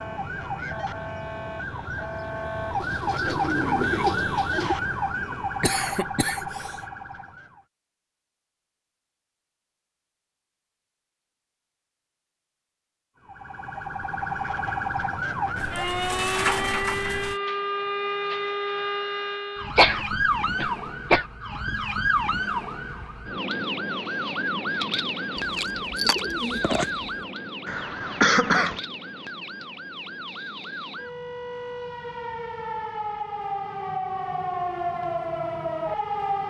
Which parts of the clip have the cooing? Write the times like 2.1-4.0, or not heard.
2.8-4.8, 15.6-17.4, 25.4-26.9.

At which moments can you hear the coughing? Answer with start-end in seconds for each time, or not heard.
5.6-6.7, 19.8-21.2, 27.6-28.8.